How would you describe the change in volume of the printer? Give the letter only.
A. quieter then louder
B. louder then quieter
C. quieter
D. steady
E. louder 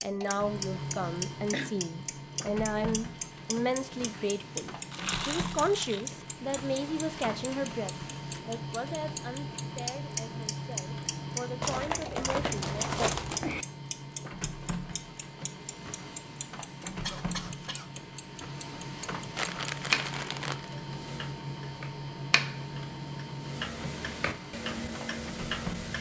D.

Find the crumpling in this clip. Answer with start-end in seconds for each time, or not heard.
4.9-6.0, 11.6-13.7, 19.4-20.7.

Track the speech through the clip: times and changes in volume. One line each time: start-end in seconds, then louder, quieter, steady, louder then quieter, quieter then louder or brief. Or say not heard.
0.0-13.1 quieter.